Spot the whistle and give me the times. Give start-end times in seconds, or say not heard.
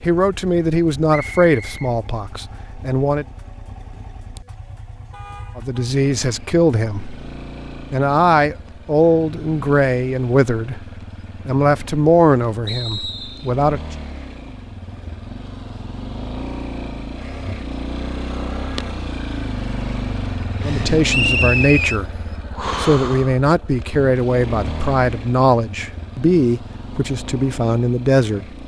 1.1-1.9, 12.7-13.5, 21.1-22.0.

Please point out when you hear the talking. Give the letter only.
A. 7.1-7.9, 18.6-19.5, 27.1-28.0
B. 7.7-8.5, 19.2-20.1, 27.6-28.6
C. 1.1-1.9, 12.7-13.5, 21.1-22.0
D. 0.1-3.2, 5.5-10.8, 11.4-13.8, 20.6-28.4
D.